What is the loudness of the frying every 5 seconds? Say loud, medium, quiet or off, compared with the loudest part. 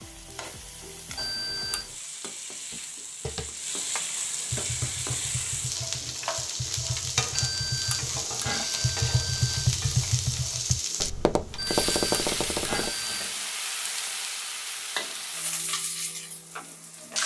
medium, loud, loud, loud.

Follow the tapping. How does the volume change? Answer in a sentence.
The volume of the tapping goes up.